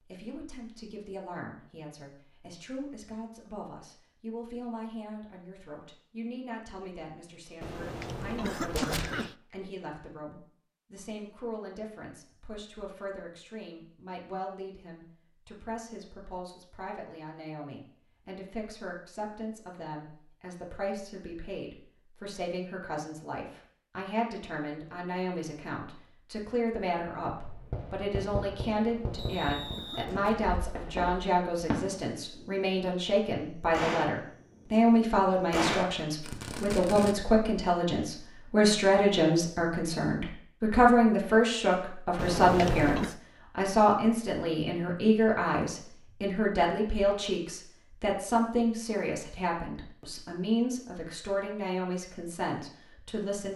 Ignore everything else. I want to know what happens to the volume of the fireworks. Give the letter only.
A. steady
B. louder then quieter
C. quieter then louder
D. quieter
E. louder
E.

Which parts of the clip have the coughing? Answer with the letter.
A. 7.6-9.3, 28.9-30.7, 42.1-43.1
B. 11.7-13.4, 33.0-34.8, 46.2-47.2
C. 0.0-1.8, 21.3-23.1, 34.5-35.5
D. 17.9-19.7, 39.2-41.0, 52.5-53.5
A.